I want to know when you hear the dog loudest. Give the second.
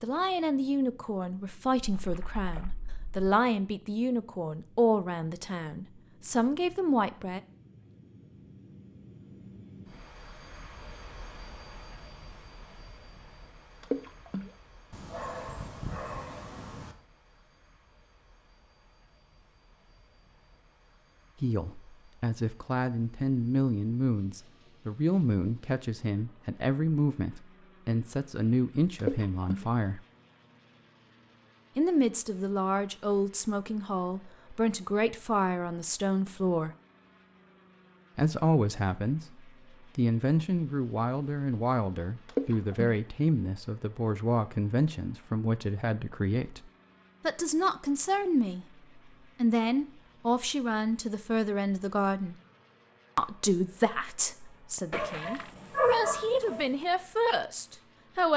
56 s.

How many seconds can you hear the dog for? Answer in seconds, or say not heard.
4 s.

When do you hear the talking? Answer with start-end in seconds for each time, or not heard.
0.0-7.4, 21.4-30.0, 31.8-36.7, 38.1-48.6, 49.4-52.4, 53.1-58.3.